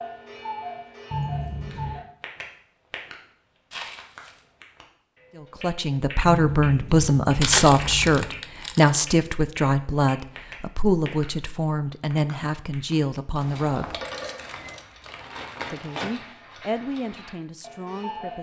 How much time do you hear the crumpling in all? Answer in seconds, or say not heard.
4 s.